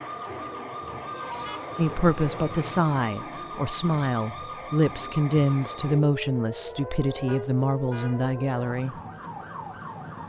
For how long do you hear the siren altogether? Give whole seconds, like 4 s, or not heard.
10 s.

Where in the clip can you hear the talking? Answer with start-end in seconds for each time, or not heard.
1.8-8.9.